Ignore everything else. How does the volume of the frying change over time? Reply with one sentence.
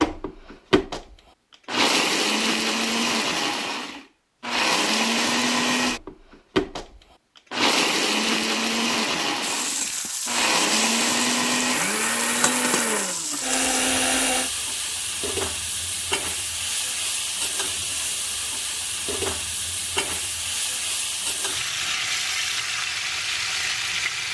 The loudness of the frying stays about the same.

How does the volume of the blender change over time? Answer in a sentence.
The loudness of the blender stays about the same.